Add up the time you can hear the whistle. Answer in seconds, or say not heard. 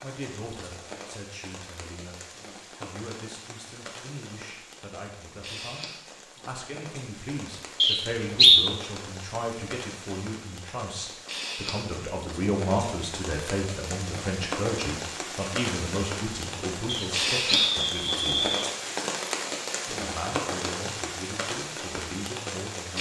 3 s.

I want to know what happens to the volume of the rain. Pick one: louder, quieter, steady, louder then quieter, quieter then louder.
louder.